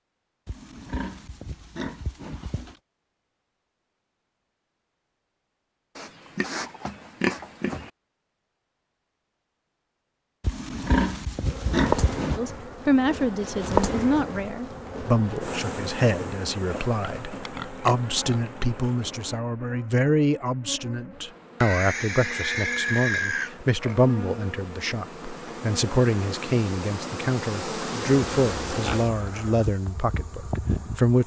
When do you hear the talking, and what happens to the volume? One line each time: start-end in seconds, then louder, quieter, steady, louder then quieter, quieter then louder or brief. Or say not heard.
12.3-31.2 steady.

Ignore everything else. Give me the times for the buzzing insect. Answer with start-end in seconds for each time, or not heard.
11.4-31.2.